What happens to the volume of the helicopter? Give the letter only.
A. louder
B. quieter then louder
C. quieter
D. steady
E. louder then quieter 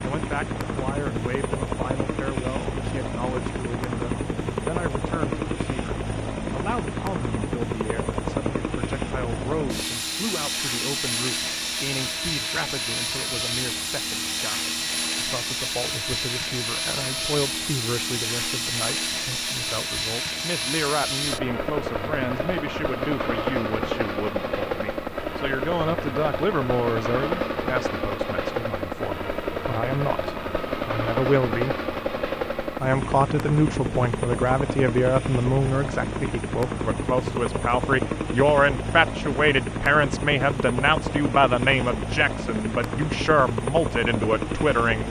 D.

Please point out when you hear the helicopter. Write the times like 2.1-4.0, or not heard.
0.0-45.0.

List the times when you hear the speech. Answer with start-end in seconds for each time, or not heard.
0.0-31.8, 32.6-45.0.